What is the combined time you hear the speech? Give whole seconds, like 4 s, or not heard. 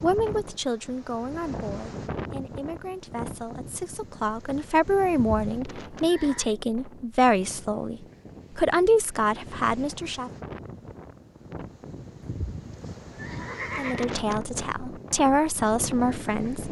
13 s.